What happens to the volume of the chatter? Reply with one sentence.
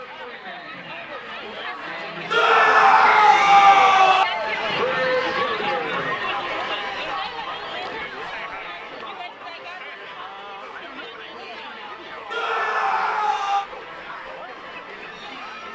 The loudness of the chatter goes up, then down.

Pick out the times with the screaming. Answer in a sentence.
You can hear the screaming from 2.3 to 4.2 s and from 12.3 to 13.7 s.